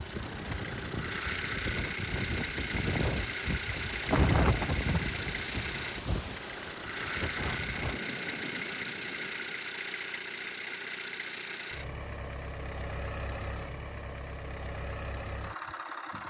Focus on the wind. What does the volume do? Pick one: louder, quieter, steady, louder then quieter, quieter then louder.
louder then quieter.